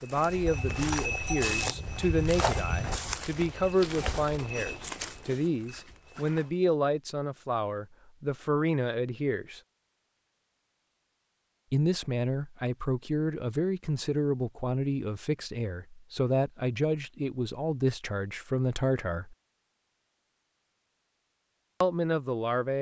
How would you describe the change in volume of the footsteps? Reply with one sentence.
The loudness of the footsteps goes down.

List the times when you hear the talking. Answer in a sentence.
The talking can be heard from 0.0 to 9.6 s, from 11.7 to 19.4 s and from 21.8 to 22.7 s.